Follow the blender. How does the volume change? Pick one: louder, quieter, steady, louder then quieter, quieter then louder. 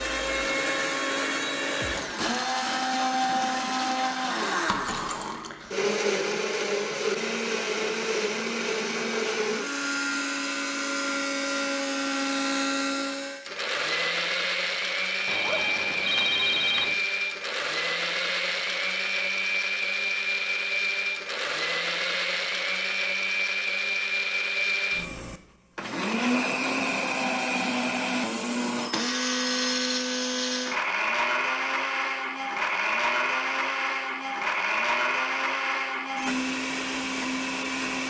steady.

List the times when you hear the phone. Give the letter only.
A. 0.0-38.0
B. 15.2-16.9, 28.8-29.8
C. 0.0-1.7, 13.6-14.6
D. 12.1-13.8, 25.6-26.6
B.